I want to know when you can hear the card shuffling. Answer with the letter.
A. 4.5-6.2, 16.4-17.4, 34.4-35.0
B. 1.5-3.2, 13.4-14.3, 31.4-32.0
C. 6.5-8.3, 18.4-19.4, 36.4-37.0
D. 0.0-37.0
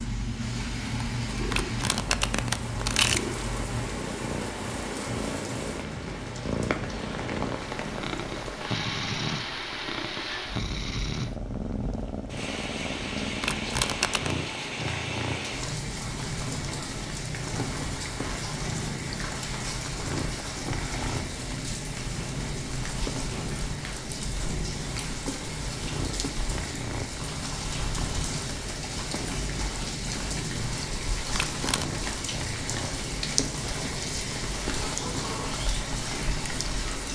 B.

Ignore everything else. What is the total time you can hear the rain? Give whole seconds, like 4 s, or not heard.
37 s.